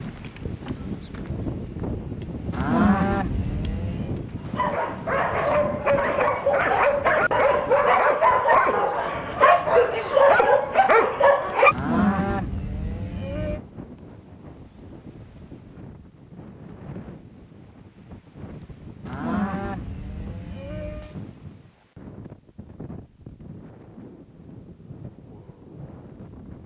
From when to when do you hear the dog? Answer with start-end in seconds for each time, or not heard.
4.5-11.8.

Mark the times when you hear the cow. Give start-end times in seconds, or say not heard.
2.5-4.1, 11.7-13.6, 19.1-21.1.